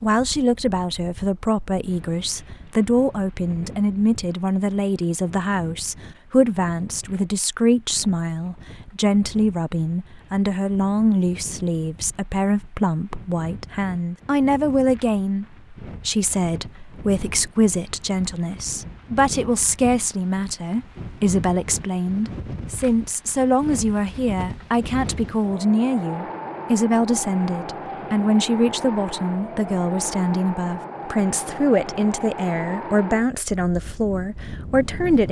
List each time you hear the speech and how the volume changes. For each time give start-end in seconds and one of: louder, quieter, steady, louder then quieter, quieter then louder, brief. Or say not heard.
0.0-35.2 steady.